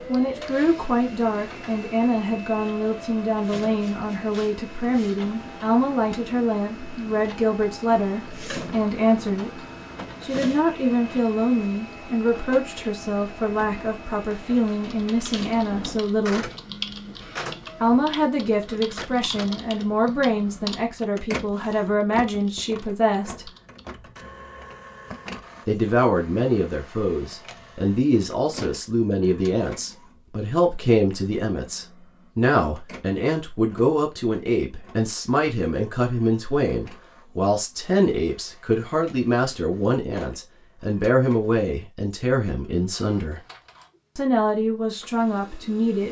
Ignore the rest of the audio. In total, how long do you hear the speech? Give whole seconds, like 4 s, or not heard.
41 s.